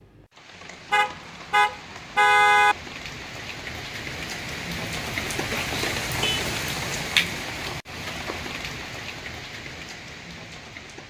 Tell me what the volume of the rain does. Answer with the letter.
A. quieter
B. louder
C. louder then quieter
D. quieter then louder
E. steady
C.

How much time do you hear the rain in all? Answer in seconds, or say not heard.
11 s.